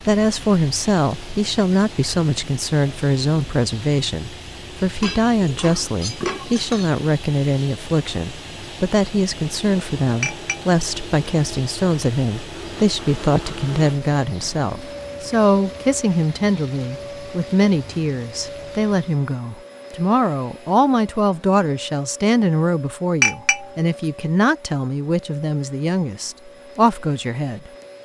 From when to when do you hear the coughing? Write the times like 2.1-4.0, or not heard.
not heard.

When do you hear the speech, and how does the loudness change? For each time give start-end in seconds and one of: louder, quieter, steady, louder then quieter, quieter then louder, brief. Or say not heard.
0.1-27.7 steady.